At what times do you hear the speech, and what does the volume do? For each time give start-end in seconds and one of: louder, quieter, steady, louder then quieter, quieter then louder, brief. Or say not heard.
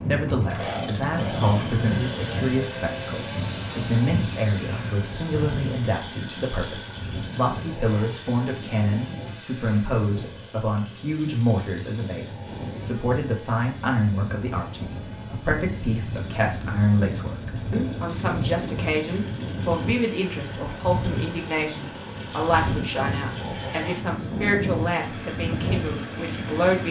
0.1-26.8 steady.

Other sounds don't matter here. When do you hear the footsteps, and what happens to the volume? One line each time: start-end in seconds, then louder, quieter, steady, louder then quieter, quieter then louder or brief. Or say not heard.
not heard.